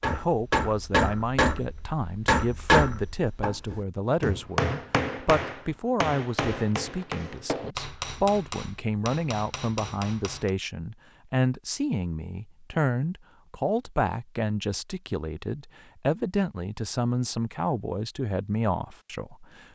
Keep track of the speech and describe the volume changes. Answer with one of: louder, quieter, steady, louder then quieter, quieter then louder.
steady.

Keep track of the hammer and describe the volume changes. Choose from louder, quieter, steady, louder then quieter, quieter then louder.
quieter.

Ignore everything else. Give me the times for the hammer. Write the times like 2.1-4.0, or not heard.
0.0-10.5.